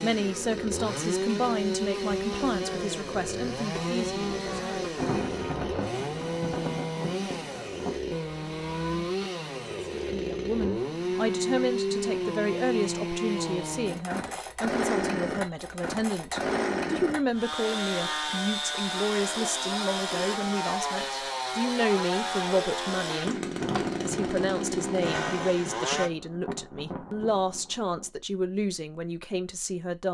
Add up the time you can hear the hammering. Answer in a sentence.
You can't hear the hammering here.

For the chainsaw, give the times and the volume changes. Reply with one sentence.
You can hear the chainsaw from 0.0 to 26.1 s, at a steady volume.